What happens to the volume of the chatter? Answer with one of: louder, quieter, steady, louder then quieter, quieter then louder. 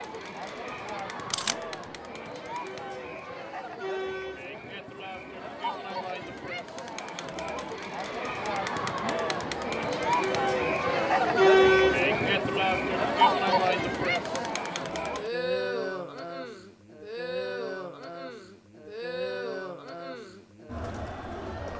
louder then quieter.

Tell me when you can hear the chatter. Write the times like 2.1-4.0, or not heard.
0.0-21.7.